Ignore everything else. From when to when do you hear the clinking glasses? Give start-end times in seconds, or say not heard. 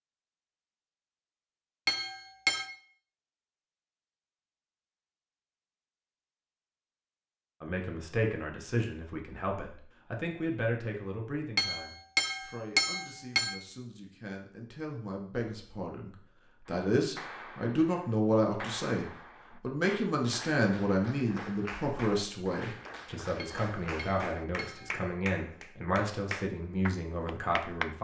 1.9-2.7, 11.6-13.6, 23.4-25.1.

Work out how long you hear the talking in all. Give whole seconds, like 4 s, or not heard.
20 s.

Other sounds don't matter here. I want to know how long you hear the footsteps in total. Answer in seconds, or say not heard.
not heard.